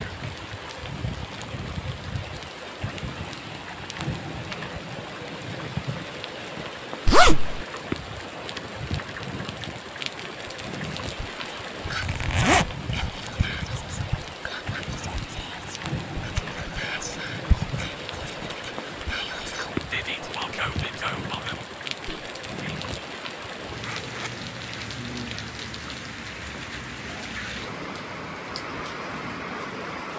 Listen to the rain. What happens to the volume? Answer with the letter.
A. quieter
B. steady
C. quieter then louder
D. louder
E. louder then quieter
B.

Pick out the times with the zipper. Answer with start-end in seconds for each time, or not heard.
7.0-7.7, 12.0-12.7, 23.7-24.4.